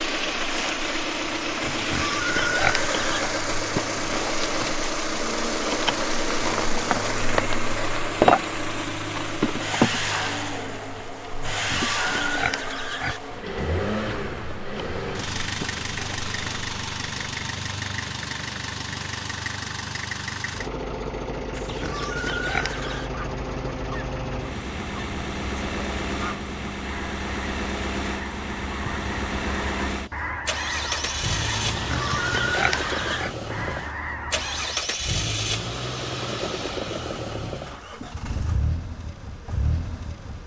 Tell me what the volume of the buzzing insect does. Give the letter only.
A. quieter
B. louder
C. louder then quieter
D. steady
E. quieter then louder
C.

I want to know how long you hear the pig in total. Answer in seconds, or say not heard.
7 s.